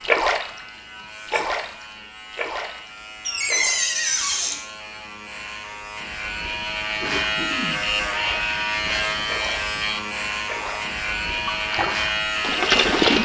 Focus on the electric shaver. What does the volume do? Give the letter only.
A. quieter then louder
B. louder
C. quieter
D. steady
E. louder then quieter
B.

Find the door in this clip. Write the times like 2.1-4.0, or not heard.
3.2-4.6.